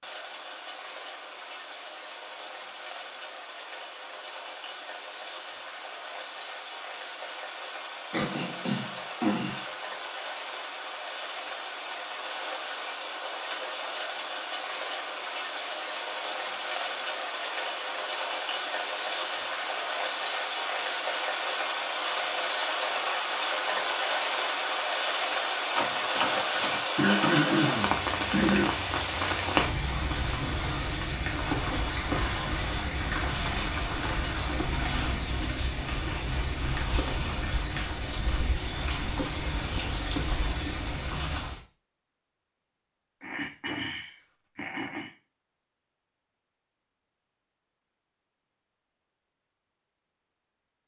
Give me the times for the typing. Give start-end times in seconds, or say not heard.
not heard.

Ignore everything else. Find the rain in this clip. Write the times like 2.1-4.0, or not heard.
0.0-41.6.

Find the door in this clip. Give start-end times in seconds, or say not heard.
25.8-27.4.